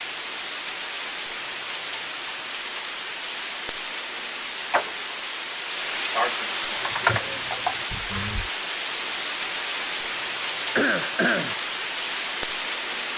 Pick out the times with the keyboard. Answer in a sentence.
You can hear the keyboard from 6.8 to 8.5 s.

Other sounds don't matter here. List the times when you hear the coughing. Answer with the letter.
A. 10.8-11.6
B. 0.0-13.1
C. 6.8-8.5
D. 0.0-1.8
A.